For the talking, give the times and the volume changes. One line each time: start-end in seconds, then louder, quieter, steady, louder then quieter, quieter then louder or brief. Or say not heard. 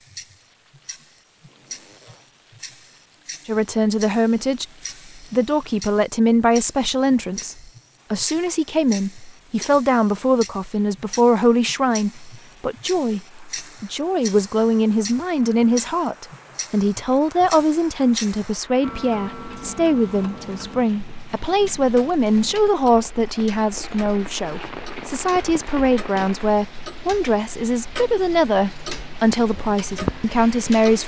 3.5-31.0 steady.